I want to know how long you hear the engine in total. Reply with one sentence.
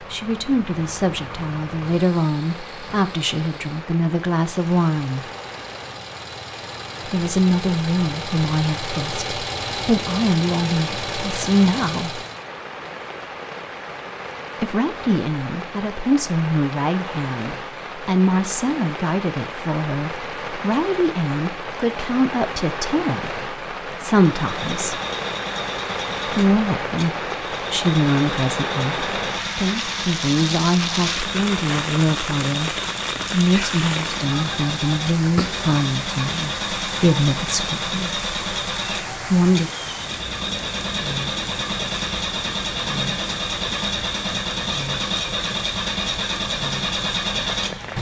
The engine can be heard for 36 seconds in total.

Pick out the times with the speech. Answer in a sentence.
The speech can be heard from 0.1 to 5.2 s, from 7.0 to 12.2 s, from 14.6 to 24.9 s, from 26.2 to 38.2 s and from 39.2 to 39.7 s.